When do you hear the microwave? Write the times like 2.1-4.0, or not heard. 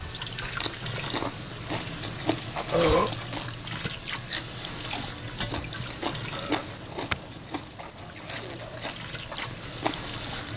not heard.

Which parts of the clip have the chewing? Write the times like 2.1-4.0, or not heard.
0.0-10.5.